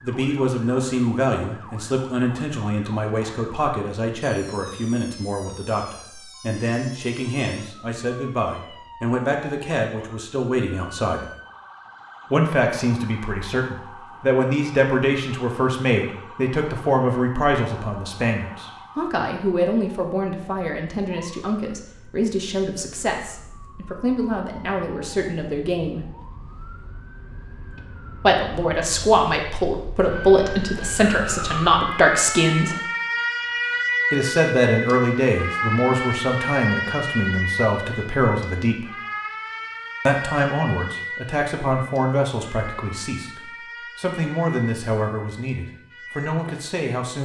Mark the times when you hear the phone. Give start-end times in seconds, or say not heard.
not heard.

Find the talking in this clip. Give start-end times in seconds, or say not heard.
0.0-11.2, 12.3-26.1, 28.2-32.8, 34.1-38.9, 40.0-47.2.